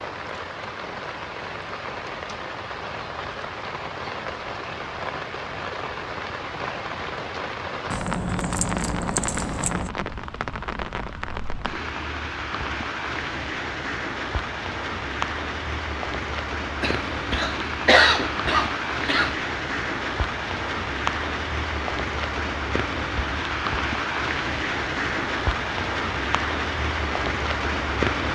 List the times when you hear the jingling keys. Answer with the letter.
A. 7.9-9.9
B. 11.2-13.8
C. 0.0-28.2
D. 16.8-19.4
A.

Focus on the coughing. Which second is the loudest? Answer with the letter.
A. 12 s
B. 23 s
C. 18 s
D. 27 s
C.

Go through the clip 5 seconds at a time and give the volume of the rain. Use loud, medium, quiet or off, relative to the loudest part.
medium, medium, medium, loud, loud, loud.